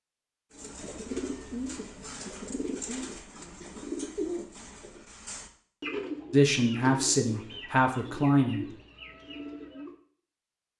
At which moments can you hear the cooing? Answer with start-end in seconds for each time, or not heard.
0.5-9.9.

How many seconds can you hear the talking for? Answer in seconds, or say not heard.
2 s.